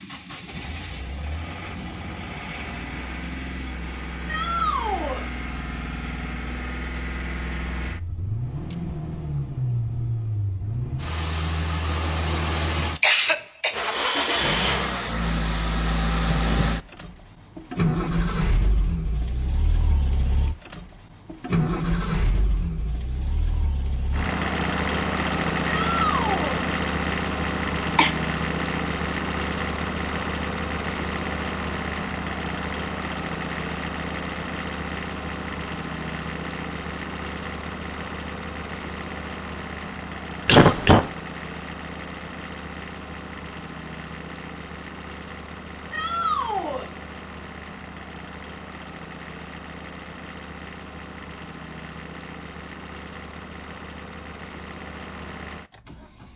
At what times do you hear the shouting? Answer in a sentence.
The shouting can be heard from 4.2 to 5.2 s, from 25.6 to 26.6 s and from 45.9 to 46.9 s.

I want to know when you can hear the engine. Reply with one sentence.
The engine can be heard from 0.0 to 56.3 s.